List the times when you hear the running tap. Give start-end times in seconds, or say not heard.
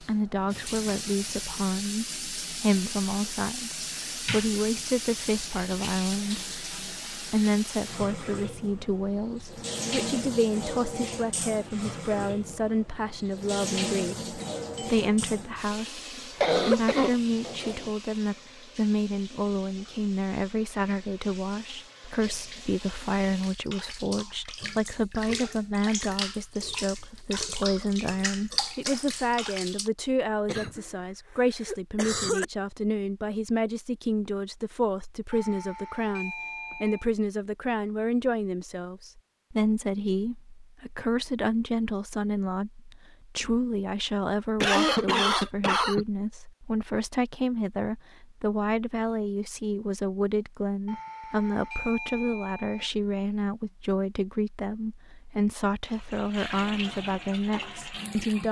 0.0-29.9, 55.9-58.4.